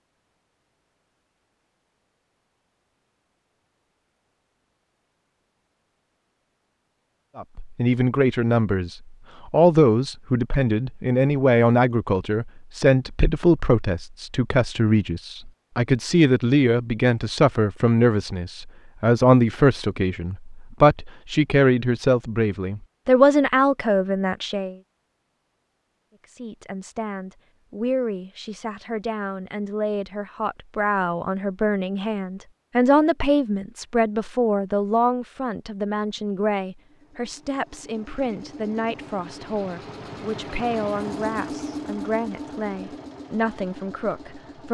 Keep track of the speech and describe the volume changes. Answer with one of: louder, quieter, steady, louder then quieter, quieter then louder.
quieter.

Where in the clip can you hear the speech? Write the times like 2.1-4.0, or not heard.
7.3-24.8, 26.2-44.6.